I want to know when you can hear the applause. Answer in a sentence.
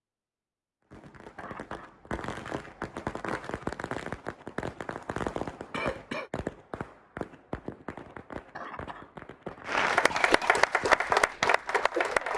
The applause can be heard from 9.7 to 12.3 s.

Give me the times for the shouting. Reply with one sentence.
The shouting can't be heard in this clip.